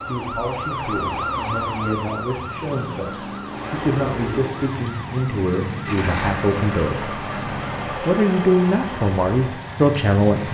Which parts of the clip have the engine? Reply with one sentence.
You can hear the engine from 3.5 to 10.4 s.